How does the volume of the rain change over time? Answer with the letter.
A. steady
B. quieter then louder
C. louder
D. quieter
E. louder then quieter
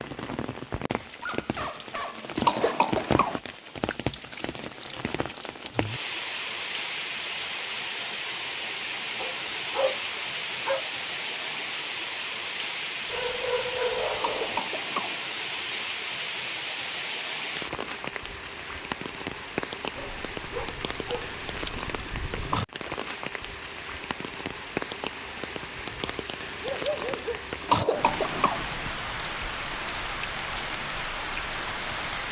A.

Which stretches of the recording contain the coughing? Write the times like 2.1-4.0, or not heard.
2.4-3.4, 14.2-15.2, 27.6-28.6.